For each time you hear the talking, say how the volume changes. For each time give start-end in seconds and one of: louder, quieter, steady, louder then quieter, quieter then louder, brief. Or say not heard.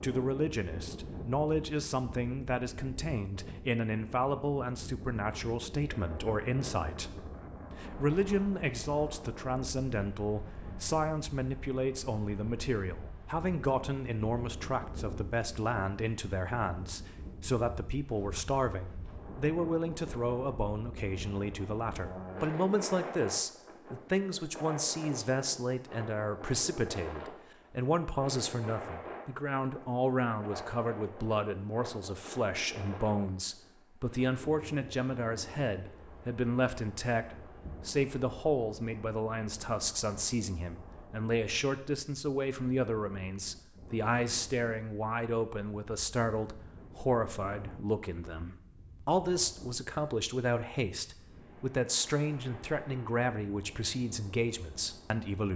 0.0-55.5 steady.